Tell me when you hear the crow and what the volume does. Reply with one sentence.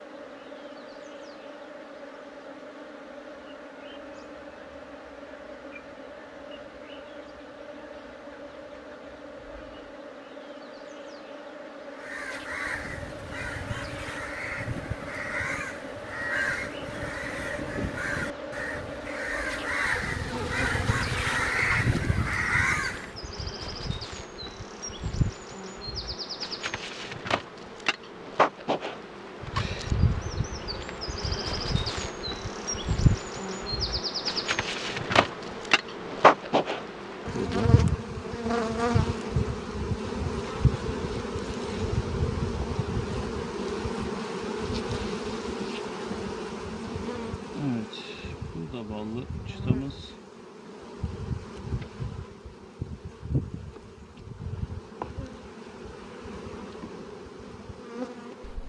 The crow can be heard from 11.9 to 23.2 s, getting louder.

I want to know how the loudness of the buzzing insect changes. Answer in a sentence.
The loudness of the buzzing insect goes up, then down.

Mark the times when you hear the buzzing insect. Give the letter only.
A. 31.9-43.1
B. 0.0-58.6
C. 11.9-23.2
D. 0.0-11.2
B.